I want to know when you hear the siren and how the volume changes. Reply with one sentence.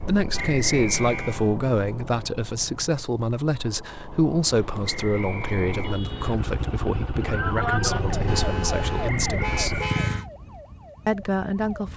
You can hear the siren from 7.2 to 11.9 s, getting quieter.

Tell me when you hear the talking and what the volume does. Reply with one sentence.
You can hear the talking from 0.0 to 9.8 s, getting quieter; and briefly from 11.1 to 11.9 s.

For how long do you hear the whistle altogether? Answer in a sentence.
The whistle can be heard for 4 seconds in total.